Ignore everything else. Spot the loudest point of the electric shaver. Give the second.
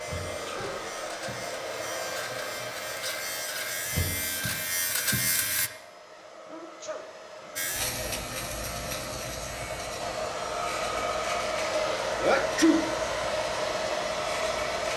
5 s.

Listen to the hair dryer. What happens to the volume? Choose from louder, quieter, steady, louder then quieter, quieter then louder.
quieter then louder.